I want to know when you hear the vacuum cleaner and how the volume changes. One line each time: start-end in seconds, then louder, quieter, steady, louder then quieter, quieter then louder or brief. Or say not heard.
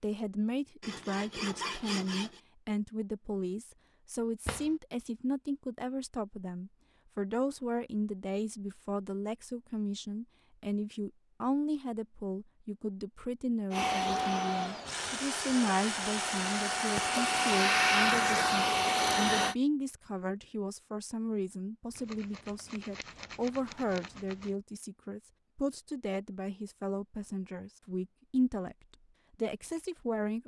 13.7-19.6 quieter then louder.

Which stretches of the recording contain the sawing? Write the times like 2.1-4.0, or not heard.
0.8-2.4, 14.8-17.6, 21.9-24.6.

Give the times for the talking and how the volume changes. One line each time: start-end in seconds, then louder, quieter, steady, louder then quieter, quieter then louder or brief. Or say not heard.
0.0-28.8 steady
29.4-30.4 brief.